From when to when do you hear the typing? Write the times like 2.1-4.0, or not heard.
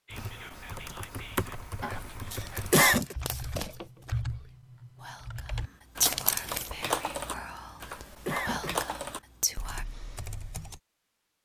0.1-10.8.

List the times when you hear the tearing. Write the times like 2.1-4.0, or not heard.
2.3-4.2, 6.0-6.7.